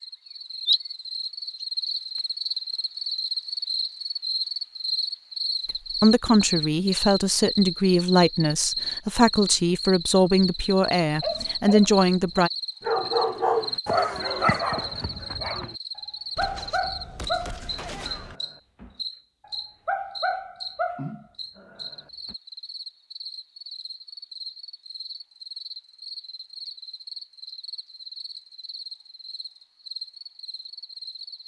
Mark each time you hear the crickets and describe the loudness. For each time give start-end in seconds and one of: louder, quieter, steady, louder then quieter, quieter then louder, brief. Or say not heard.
0.0-31.4 quieter.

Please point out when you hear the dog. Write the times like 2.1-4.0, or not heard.
11.2-22.4.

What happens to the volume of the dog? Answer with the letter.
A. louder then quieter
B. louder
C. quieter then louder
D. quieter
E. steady
C.